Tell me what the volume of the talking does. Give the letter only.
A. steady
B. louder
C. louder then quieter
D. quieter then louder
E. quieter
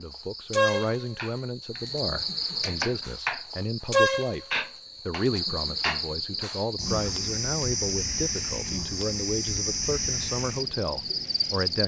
A.